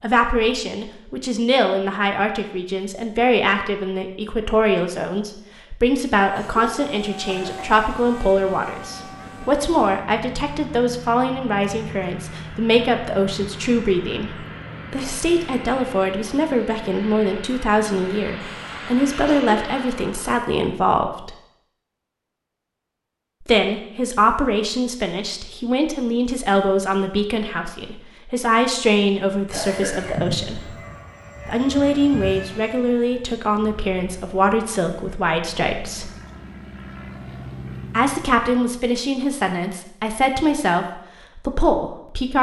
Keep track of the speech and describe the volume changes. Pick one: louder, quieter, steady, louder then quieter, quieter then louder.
steady.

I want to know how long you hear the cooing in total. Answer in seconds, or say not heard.
not heard.